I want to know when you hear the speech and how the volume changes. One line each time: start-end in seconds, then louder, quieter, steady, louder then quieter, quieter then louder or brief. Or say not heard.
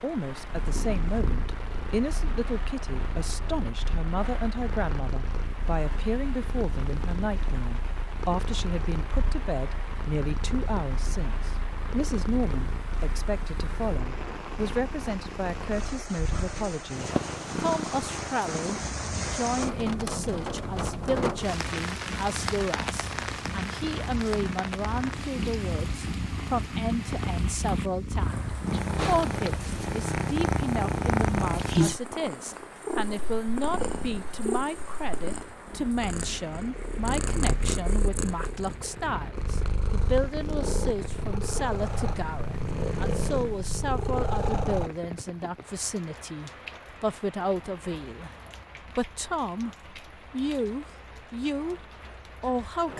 0.0-52.9 steady.